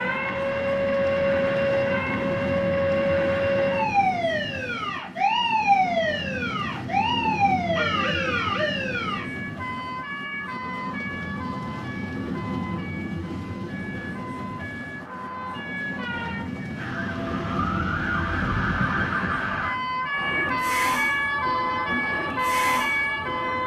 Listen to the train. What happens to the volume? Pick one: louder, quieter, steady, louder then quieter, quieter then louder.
steady.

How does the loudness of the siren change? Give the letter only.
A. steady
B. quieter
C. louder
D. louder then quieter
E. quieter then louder
E.